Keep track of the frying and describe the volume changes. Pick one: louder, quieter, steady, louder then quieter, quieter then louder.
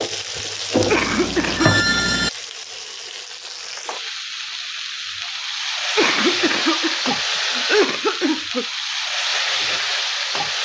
quieter then louder.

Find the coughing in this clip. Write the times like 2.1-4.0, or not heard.
0.8-1.9, 6.0-8.7.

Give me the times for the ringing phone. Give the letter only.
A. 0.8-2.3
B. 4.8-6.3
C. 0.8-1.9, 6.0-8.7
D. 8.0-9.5
A.